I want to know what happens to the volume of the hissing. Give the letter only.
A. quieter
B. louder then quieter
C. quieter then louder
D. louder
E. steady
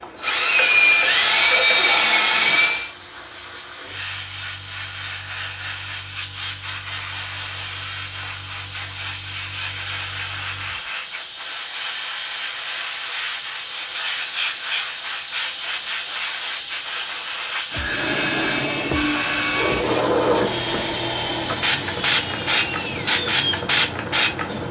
D.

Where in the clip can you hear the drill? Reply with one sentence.
The drill can be heard from 0.0 to 2.9 s and from 17.9 to 24.6 s.